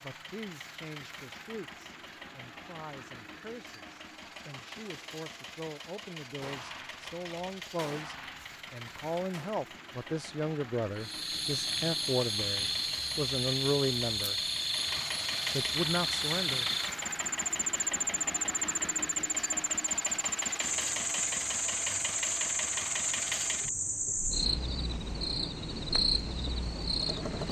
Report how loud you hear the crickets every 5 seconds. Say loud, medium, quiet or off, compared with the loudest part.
off, off, loud, loud, loud, loud.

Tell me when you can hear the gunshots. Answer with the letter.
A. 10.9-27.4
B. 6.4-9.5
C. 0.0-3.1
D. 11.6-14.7
B.